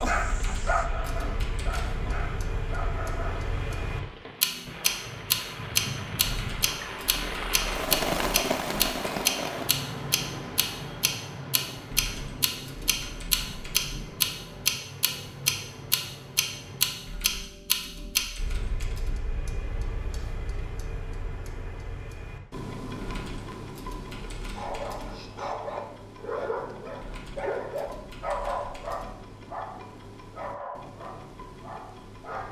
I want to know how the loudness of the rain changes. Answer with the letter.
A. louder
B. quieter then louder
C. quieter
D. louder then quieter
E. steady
D.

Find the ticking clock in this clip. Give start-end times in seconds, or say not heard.
0.0-32.4.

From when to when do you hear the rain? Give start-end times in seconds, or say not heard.
0.2-17.3.